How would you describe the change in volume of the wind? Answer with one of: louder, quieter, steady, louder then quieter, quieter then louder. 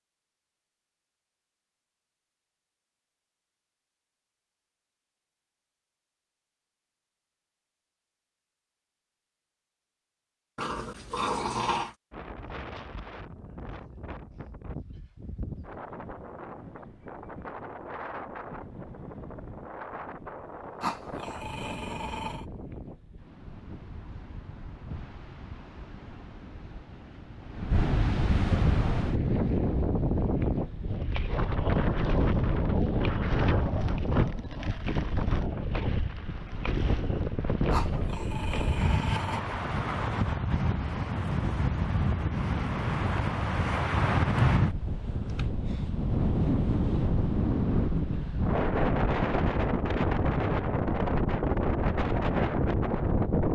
louder.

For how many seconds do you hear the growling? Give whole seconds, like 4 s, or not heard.
5 s.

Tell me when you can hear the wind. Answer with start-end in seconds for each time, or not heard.
12.1-53.5.